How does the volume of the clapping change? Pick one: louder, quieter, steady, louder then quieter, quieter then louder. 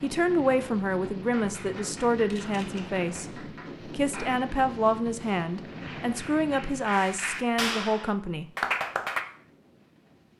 louder.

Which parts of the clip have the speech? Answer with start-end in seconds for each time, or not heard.
0.0-8.5.